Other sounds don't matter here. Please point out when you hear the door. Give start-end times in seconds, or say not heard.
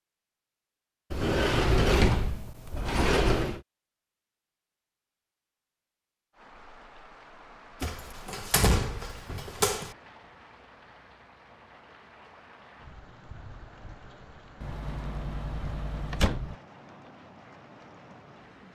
1.1-3.6, 7.8-9.9, 14.6-16.6.